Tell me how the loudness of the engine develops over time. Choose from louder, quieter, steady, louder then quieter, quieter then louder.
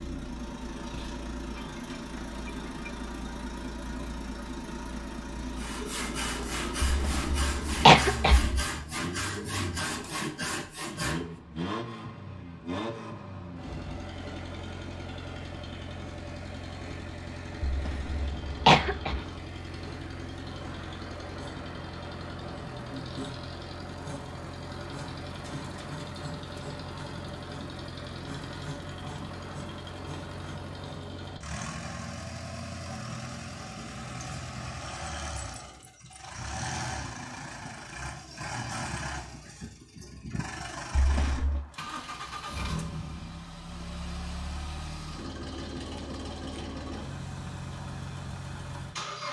steady.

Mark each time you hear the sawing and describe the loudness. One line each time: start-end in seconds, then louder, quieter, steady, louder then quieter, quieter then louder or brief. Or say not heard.
5.5-11.3 steady.